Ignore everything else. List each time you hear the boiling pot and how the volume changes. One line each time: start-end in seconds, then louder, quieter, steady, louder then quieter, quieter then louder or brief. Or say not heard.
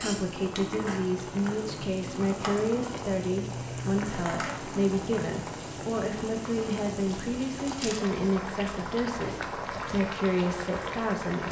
0.0-11.4 steady.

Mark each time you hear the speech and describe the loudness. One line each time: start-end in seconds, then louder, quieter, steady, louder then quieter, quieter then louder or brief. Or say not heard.
0.0-11.4 steady.